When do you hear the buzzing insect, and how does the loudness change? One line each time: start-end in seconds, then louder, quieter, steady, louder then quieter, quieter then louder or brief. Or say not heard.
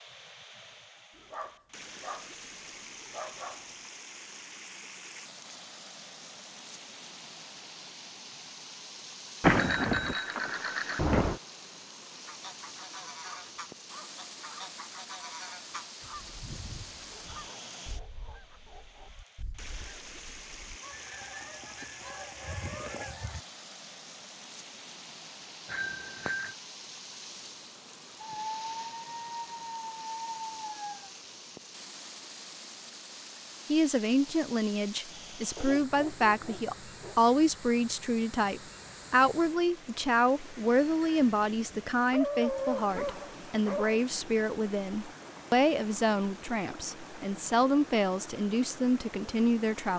not heard.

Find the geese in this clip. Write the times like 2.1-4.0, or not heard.
12.2-23.4.